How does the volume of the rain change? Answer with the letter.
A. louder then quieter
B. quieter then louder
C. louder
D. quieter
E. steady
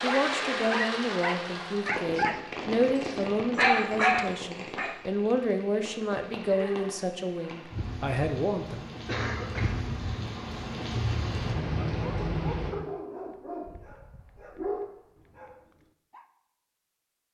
B.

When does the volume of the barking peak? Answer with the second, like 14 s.
4 s.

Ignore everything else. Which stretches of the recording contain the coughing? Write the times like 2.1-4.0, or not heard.
9.1-9.8.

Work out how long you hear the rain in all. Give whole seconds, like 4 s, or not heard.
13 s.